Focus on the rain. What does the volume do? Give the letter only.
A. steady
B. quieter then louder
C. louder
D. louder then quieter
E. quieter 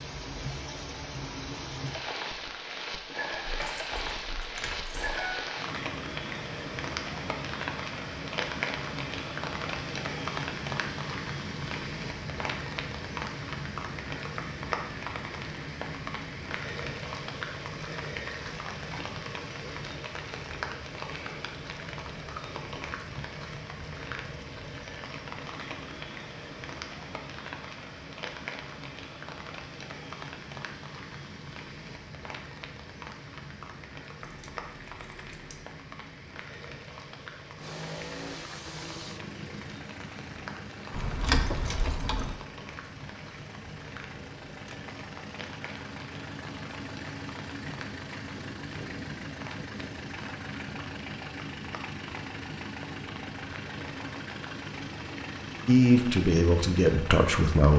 E.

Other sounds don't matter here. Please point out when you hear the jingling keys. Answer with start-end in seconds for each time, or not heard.
3.5-5.3, 34.2-35.6, 40.9-42.4.